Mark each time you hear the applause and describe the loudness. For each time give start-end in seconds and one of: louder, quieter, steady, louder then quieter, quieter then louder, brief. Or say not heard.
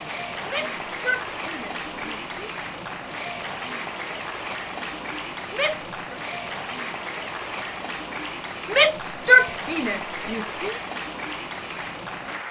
0.0-12.4 steady.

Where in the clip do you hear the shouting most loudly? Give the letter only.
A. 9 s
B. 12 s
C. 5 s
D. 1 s
A.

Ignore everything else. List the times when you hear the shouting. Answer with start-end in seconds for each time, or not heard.
0.5-2.4, 5.5-5.9, 8.7-10.8.